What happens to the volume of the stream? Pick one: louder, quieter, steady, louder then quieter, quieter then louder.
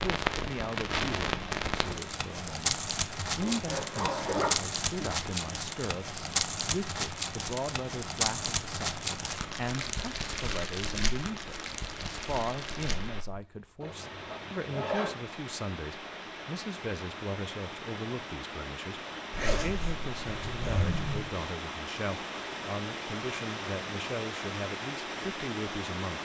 louder.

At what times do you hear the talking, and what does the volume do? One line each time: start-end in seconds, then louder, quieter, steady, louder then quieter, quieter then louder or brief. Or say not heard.
0.0-26.2 steady.